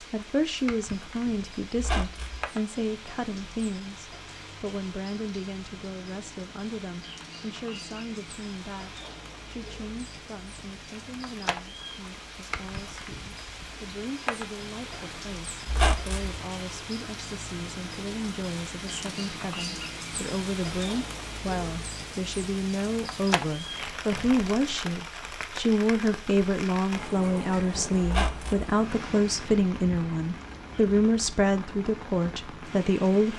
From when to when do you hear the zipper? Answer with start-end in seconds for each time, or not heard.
not heard.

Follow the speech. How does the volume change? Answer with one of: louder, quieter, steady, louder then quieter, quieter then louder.
quieter then louder.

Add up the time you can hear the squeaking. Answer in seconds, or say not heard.
2 s.